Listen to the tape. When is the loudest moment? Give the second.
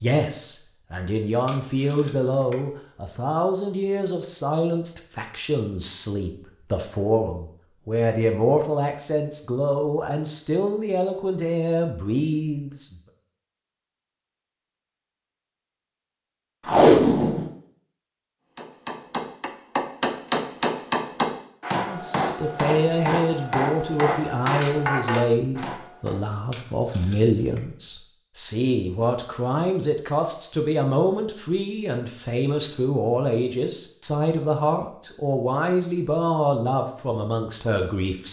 17 s.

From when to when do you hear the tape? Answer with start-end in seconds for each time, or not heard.
1.4-2.5, 16.6-17.4, 26.5-27.6.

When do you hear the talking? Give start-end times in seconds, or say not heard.
0.0-12.9, 21.8-38.2.